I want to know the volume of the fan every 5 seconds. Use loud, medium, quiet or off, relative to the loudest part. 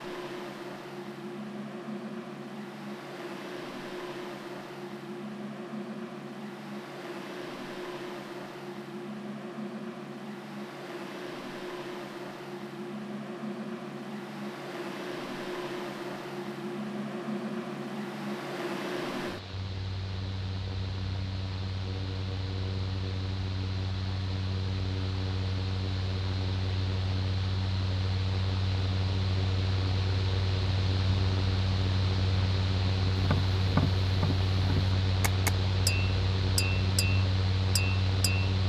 medium, medium, medium, loud, medium, loud, loud, loud.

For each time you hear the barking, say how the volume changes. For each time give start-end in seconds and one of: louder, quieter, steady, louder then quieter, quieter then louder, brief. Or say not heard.
not heard.